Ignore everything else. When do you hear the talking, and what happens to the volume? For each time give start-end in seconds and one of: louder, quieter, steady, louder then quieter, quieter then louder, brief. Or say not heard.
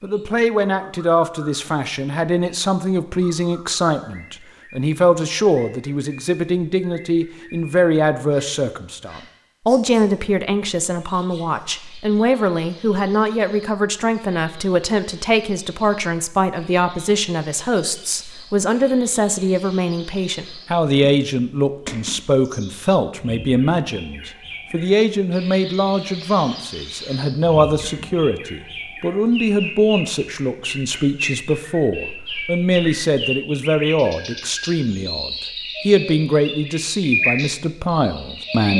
0.0-38.7 steady.